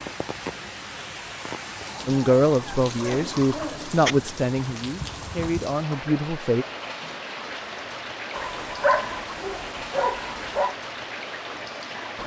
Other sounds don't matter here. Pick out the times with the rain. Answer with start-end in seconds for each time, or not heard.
0.0-12.2.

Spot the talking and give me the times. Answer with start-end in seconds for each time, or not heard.
2.0-6.7.